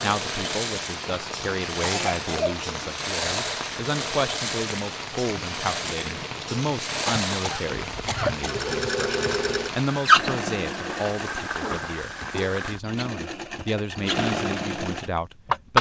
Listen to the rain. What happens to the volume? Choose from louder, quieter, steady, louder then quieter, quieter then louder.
steady.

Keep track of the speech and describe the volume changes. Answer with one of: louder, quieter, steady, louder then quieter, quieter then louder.
steady.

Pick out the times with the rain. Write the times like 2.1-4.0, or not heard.
0.0-12.8.